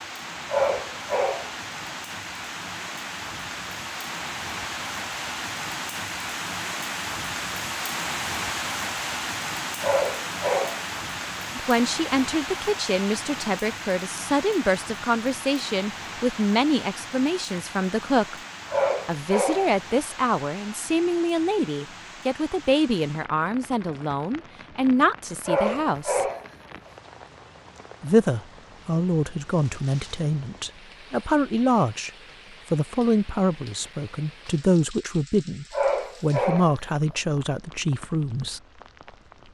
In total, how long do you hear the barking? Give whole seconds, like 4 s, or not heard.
5 s.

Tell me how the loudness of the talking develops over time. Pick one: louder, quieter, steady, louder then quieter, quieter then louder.
steady.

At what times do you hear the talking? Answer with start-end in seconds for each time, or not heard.
11.6-18.4, 19.1-26.2, 28.0-32.1, 32.7-38.6.